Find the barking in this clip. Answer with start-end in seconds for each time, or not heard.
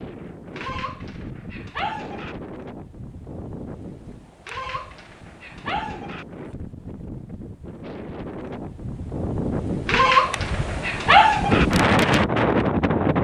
0.6-2.4, 4.5-6.2, 9.8-11.7.